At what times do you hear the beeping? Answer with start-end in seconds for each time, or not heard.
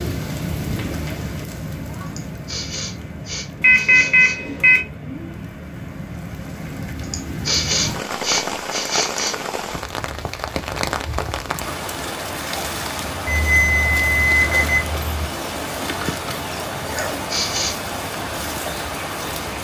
3.6-4.8, 13.2-15.3.